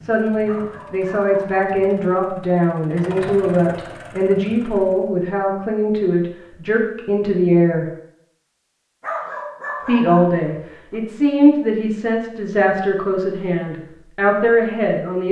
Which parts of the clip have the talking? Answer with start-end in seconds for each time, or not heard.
0.0-7.8, 9.8-15.2.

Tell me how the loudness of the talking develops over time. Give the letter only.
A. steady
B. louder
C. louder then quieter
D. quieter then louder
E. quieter
A.